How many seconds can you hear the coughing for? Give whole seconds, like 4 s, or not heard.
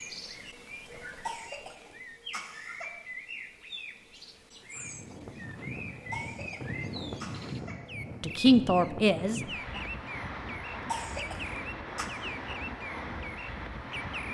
5 s.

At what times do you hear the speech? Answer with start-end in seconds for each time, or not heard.
8.2-9.8.